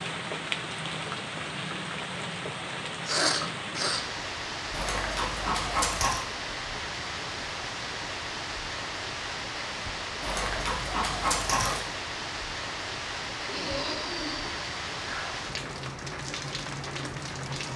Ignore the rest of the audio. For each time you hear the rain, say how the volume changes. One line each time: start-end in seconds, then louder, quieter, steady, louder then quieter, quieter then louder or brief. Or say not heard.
0.0-17.7 steady.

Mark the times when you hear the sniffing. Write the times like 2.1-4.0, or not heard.
3.0-4.0, 13.4-15.4.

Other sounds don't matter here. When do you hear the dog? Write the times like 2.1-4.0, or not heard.
4.7-6.2, 10.2-11.8.